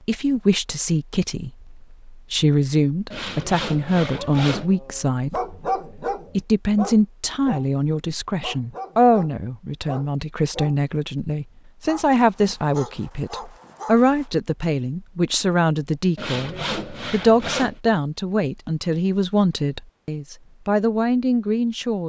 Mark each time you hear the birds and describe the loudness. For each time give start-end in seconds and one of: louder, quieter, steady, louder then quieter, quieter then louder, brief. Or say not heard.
not heard.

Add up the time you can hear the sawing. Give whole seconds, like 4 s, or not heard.
3 s.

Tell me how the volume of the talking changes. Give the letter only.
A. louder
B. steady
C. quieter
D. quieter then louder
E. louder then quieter
B.